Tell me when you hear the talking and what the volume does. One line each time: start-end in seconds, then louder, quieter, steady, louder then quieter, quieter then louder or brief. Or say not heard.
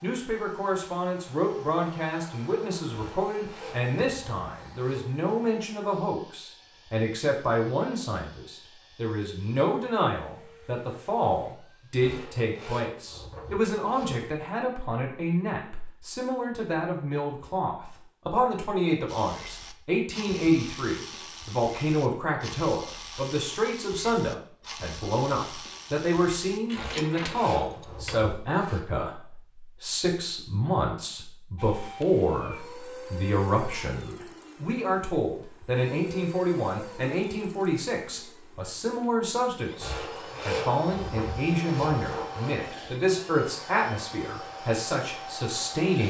0.0-46.0 steady.